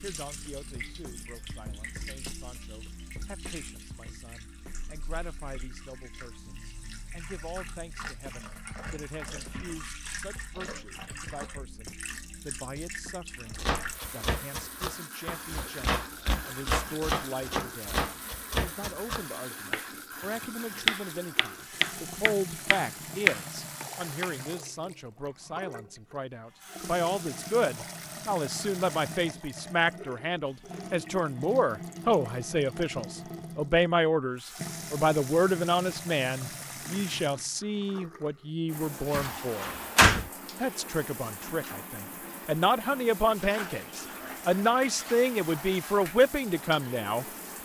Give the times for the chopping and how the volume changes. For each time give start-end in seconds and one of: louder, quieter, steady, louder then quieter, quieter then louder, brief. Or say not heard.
13.5-24.3 louder.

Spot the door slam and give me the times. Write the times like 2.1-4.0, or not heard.
39.1-40.2.